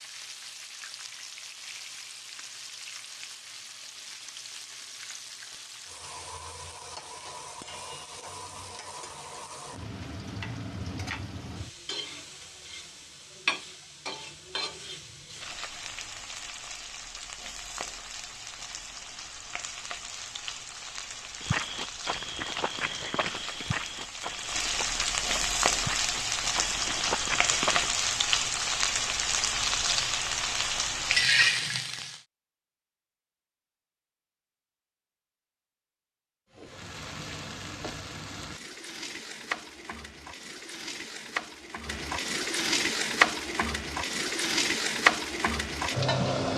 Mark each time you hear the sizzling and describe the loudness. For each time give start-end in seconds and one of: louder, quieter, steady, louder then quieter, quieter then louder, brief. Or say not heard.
0.0-32.2 louder
36.5-46.5 louder.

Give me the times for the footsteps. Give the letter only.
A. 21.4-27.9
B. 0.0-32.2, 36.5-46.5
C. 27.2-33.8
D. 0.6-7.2
A.